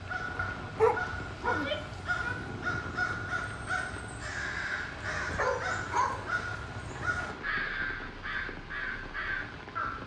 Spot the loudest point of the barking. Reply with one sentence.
The loudest moment of the barking is at 1 second.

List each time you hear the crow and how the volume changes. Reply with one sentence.
The crow can be heard from 0.0 to 10.0 s, at a steady volume.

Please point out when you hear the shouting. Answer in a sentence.
The shouting can be heard from 1.4 to 2.4 s.